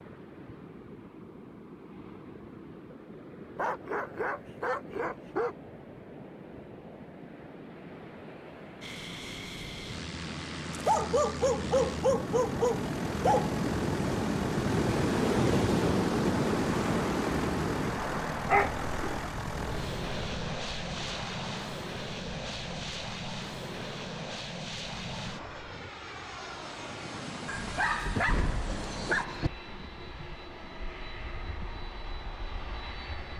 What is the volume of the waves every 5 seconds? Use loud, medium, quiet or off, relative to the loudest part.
quiet, quiet, loud, loud, quiet, quiet, quiet.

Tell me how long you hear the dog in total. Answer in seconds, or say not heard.
8 s.